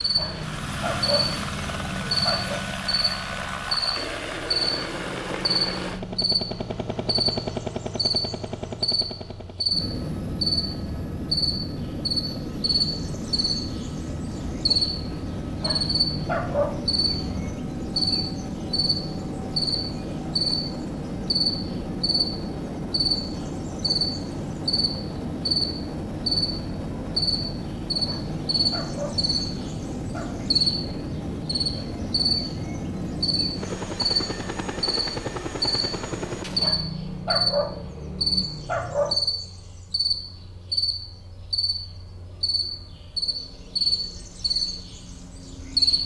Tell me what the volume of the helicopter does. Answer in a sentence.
The loudness of the helicopter stays about the same.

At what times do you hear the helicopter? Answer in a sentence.
You can hear the helicopter from 0.0 to 36.5 s.